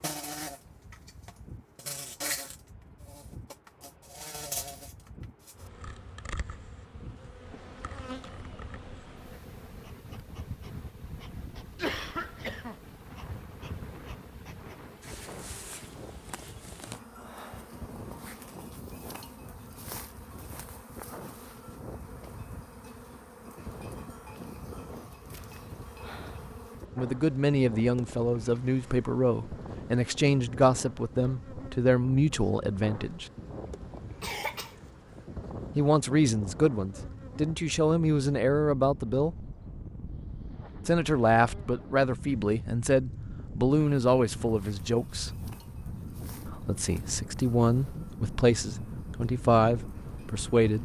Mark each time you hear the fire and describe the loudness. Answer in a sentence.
The fire can't be heard in this clip.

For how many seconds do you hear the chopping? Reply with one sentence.
The chopping can't be heard in this clip.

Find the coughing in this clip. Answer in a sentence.
You can hear the coughing from 11.8 to 12.8 s and from 34.2 to 35.2 s.